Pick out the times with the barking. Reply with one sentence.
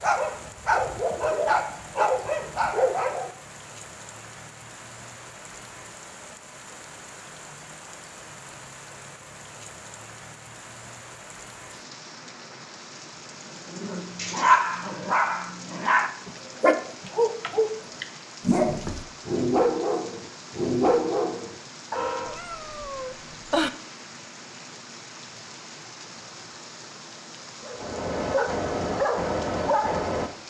You can hear the barking from 0.0 to 3.3 s, from 13.7 to 22.4 s and from 27.6 to 30.3 s.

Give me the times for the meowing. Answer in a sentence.
You can hear the meowing from 22.2 to 23.7 s.